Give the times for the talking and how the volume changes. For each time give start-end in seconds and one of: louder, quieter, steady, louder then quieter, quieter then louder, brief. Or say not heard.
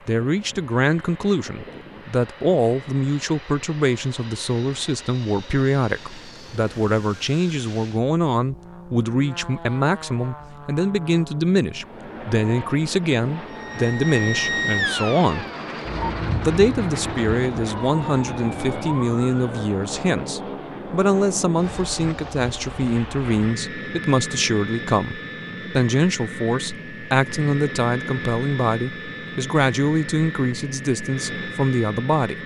0.1-15.4 steady
16.4-32.4 steady.